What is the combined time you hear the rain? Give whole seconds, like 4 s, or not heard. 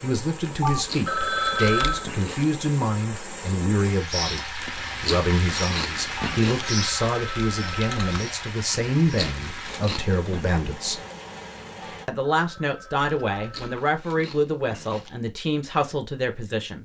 12 s.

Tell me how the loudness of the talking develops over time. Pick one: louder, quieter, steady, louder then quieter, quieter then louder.
steady.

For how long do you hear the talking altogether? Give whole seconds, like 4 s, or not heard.
16 s.